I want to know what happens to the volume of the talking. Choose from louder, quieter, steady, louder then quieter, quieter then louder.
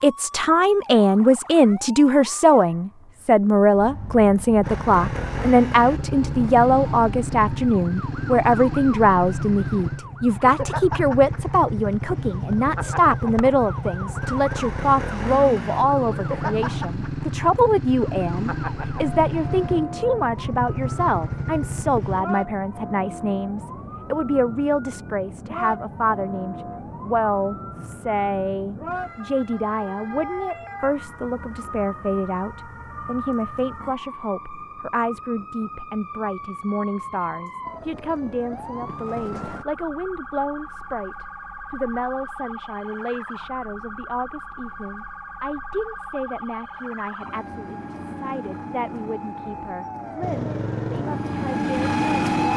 quieter.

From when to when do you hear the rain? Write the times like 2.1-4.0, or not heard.
not heard.